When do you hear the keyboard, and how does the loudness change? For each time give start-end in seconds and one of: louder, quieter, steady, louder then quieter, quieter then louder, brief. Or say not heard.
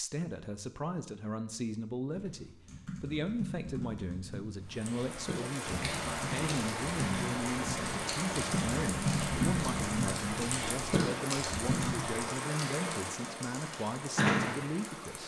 2.1-12.2 louder.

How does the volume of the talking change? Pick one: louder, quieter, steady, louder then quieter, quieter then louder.
steady.